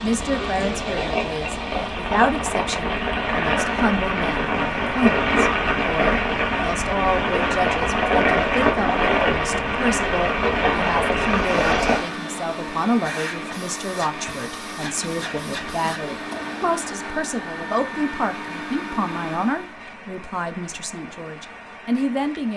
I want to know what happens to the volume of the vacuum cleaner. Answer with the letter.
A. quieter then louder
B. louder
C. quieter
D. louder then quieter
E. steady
E.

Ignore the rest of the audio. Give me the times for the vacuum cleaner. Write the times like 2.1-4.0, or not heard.
11.2-19.8.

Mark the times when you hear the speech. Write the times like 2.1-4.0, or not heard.
0.0-22.5.